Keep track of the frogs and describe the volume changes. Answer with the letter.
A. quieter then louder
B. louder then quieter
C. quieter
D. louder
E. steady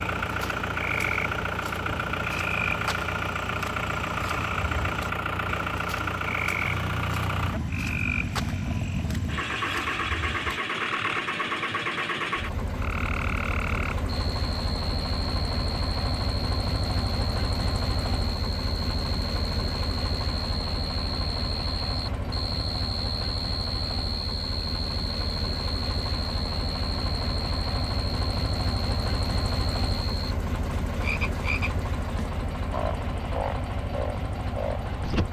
E.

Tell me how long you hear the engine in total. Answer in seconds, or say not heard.
35 s.